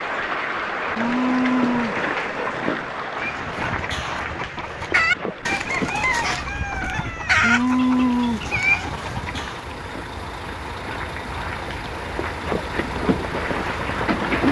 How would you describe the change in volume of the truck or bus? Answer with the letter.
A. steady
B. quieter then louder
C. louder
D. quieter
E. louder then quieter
C.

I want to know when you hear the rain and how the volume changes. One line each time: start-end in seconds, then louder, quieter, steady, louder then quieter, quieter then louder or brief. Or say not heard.
0.0-14.4 quieter then louder.